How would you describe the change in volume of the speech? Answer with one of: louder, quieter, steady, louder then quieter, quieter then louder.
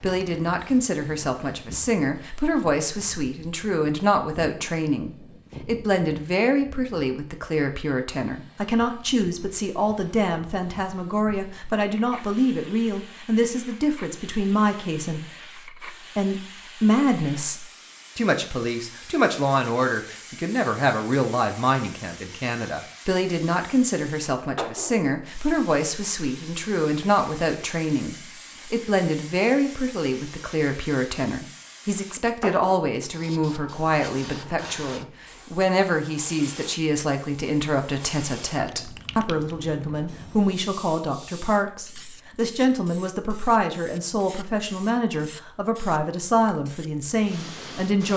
steady.